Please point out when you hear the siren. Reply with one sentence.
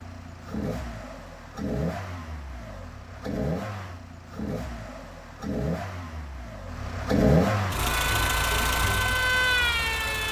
You can hear the siren from 7.9 to 10.2 s.